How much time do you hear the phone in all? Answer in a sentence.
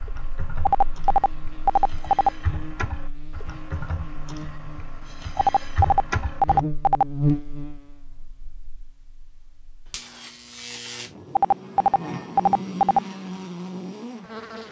You can hear the phone for 5 seconds altogether.